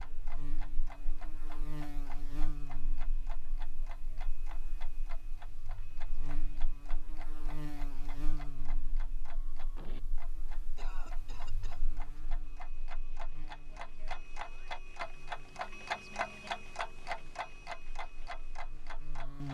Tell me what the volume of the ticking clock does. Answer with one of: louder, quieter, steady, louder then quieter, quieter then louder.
louder.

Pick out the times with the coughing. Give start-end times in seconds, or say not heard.
10.8-11.8.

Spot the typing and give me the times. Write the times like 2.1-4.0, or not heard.
not heard.